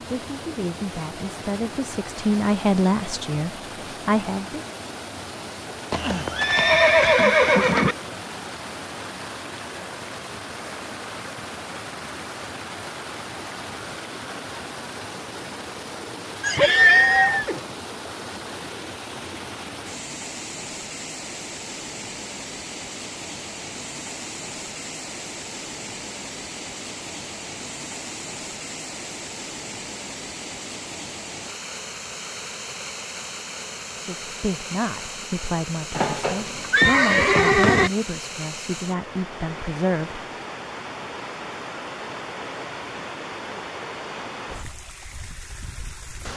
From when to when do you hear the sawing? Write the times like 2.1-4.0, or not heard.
not heard.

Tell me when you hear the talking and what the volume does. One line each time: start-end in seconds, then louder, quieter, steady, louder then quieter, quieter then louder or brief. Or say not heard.
0.0-4.6 louder
34.0-40.2 steady.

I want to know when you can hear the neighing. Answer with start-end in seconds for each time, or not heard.
5.9-8.0, 16.4-17.6, 36.0-37.9.